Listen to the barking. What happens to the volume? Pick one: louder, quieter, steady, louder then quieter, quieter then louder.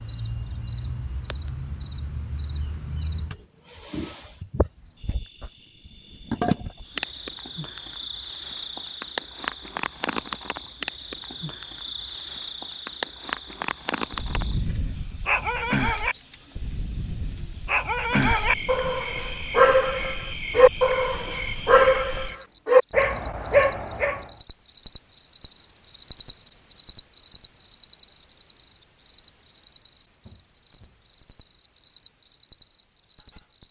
louder.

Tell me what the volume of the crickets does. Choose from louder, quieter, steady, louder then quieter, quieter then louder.
louder.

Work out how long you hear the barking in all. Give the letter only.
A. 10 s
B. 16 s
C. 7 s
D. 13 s
A.